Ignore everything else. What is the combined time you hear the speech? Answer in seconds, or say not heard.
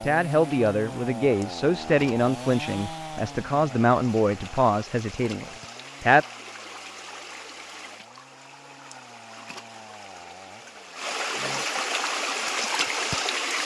6 s.